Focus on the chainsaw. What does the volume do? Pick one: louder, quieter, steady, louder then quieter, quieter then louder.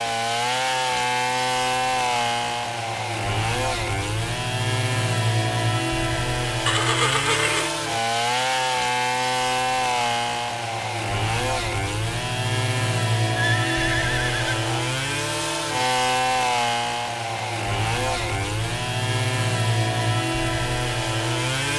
steady.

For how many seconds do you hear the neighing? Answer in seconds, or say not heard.
2 s.